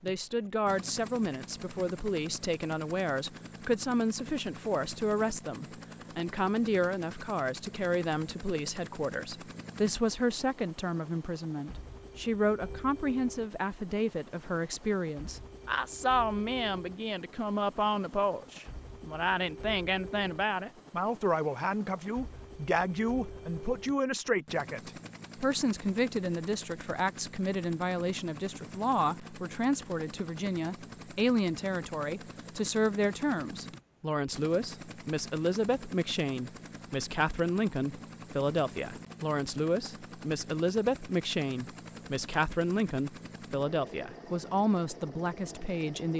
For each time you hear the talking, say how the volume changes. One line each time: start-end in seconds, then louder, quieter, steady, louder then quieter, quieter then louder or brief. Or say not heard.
0.0-46.1 steady.